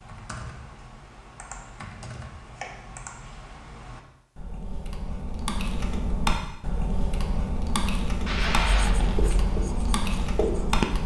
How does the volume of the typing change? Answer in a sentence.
The volume of the typing goes up.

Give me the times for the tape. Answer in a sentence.
The tape can be heard from 8.2 to 9.4 s.